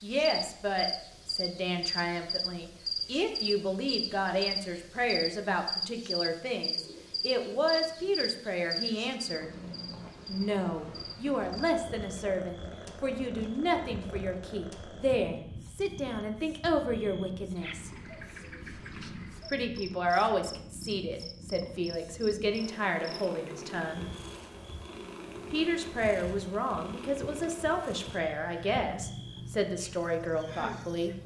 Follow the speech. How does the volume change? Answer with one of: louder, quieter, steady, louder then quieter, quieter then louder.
steady.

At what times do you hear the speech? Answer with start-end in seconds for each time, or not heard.
0.0-9.5, 10.2-17.9, 19.5-24.1, 25.5-31.1.